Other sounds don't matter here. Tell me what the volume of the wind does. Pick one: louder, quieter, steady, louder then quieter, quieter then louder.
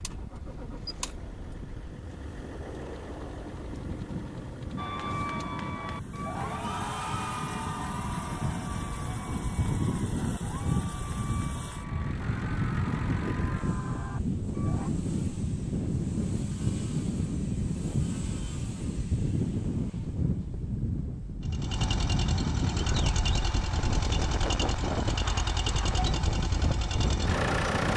louder.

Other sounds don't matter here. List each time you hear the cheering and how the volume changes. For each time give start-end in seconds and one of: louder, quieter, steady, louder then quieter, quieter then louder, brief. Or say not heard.
4.8-14.9 quieter.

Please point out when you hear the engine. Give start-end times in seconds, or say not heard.
0.0-27.9.